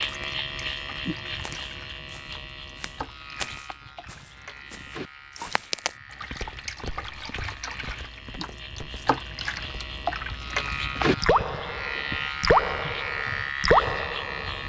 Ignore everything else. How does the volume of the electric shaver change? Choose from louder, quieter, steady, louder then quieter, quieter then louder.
quieter then louder.